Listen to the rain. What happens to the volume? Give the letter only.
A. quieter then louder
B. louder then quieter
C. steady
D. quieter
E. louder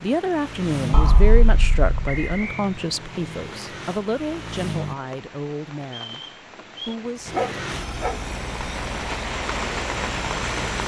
E.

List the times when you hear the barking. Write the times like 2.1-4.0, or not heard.
0.9-2.2, 7.3-8.2.